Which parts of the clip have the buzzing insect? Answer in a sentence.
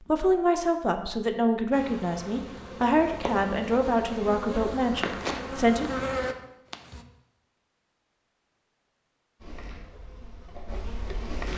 The buzzing insect can be heard from 1.7 to 7.0 s and from 9.4 to 11.5 s.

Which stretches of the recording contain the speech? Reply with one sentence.
You can hear the speech from 0.0 to 6.0 s.